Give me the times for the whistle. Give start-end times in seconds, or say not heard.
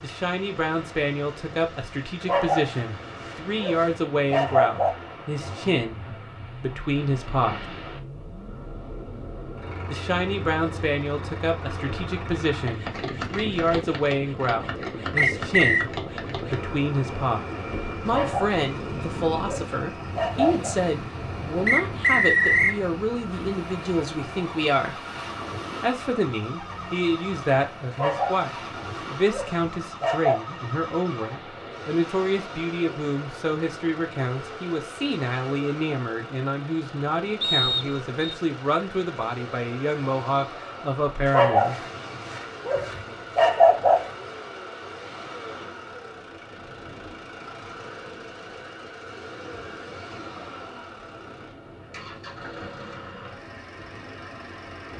15.2-15.8, 21.6-22.8, 37.4-38.4.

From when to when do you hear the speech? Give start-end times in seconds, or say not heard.
0.0-7.7, 9.9-17.4, 18.1-25.0, 25.8-41.9.